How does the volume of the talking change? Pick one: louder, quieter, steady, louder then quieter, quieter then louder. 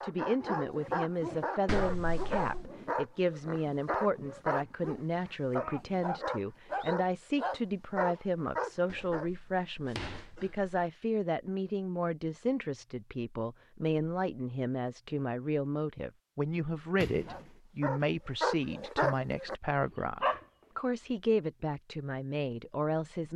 steady.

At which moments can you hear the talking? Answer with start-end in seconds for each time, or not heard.
0.0-23.3.